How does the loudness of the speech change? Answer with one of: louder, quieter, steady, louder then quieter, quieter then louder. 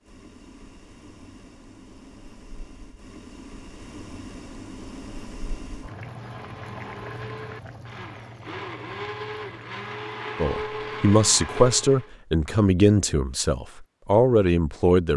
quieter then louder.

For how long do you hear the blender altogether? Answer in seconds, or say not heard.
6 s.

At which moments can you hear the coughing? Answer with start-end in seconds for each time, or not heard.
not heard.